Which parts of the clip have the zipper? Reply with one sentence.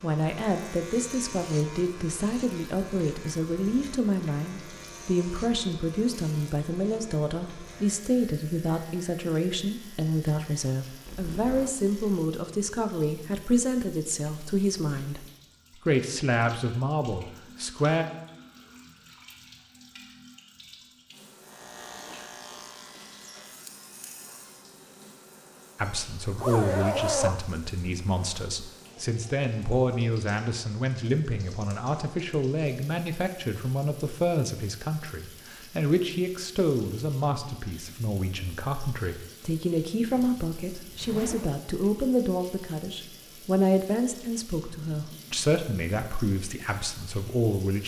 You can hear the zipper from 11.1 to 11.8 s, from 26.3 to 27.4 s and from 40.1 to 41.6 s.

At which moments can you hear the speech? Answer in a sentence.
The speech can be heard from 0.0 to 15.2 s, from 15.8 to 18.1 s and from 25.8 to 47.8 s.